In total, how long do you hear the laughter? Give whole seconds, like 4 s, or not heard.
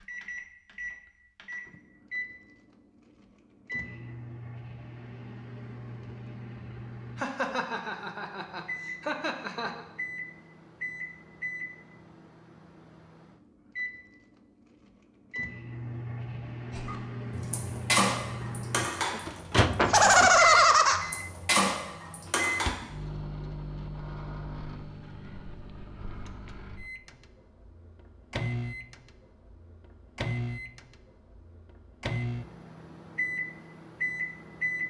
4 s.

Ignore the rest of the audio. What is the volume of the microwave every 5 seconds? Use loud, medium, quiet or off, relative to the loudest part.
medium, medium, medium, loud, loud, medium, loud.